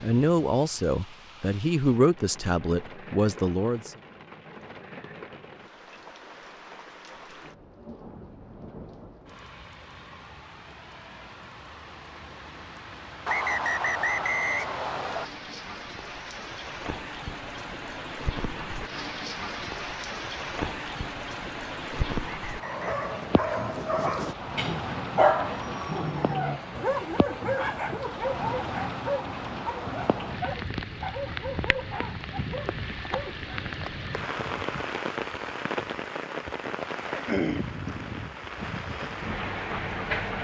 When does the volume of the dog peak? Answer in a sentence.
The volume of the dog peaks at 25 seconds.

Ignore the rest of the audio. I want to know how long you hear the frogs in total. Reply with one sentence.
The frogs can't be heard in this clip.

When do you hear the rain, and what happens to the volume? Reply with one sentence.
The rain can be heard from 0.0 to 40.3 s, getting louder.